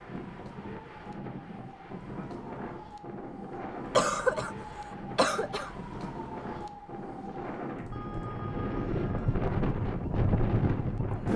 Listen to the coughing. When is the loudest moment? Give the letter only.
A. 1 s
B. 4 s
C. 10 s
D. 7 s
B.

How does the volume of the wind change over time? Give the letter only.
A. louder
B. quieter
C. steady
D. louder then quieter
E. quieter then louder
A.